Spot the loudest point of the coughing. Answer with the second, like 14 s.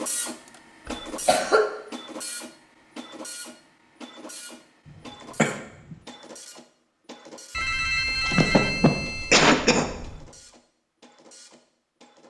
9 s.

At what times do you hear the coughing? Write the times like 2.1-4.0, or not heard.
0.8-1.7, 5.3-6.0, 8.2-9.8.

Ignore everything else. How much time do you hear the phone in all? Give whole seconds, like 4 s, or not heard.
3 s.